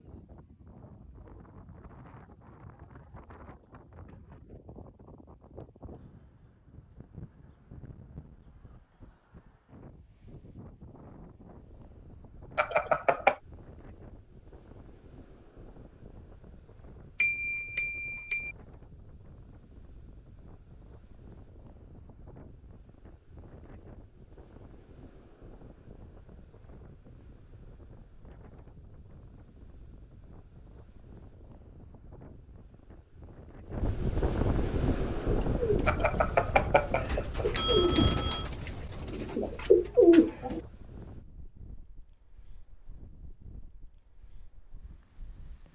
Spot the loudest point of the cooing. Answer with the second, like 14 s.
40 s.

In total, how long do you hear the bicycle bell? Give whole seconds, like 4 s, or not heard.
5 s.